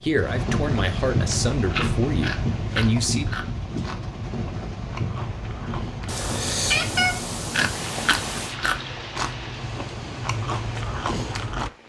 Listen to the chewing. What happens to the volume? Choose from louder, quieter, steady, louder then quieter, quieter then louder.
quieter then louder.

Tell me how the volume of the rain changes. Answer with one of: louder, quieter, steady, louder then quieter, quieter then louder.
quieter.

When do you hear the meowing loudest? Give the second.
7 s.